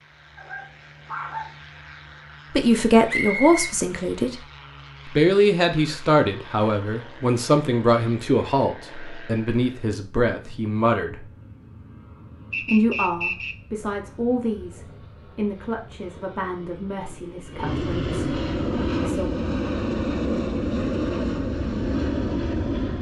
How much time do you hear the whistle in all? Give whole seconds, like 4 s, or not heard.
2 s.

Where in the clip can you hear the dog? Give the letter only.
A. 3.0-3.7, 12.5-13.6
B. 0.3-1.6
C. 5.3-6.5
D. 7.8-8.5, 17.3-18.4
B.